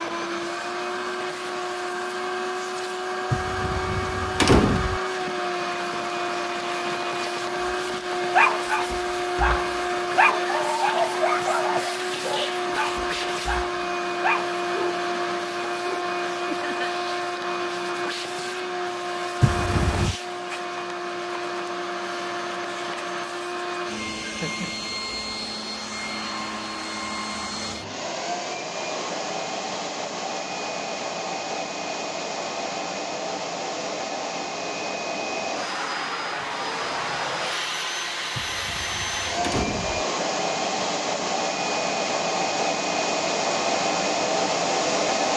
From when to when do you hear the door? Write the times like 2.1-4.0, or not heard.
3.3-5.0, 19.4-20.1, 38.4-40.0.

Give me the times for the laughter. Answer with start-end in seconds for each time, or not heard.
16.4-16.9, 24.2-24.9.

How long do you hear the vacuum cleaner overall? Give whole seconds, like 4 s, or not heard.
45 s.